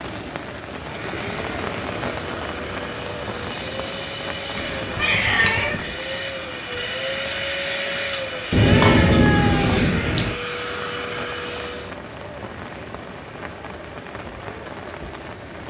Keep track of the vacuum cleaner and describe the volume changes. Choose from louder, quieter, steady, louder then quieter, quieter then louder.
louder.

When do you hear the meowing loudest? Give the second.
9 s.